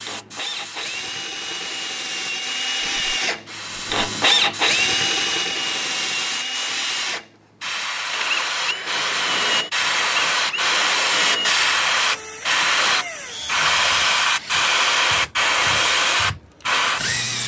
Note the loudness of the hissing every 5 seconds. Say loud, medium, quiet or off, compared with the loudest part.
quiet, medium, loud, loud.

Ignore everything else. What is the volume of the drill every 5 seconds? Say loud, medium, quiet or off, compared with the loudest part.
loud, loud, medium, medium.